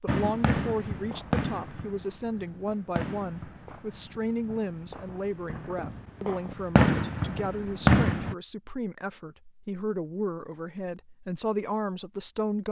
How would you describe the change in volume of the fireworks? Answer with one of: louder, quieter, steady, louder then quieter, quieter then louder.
quieter then louder.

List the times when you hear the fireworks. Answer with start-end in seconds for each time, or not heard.
0.1-8.3.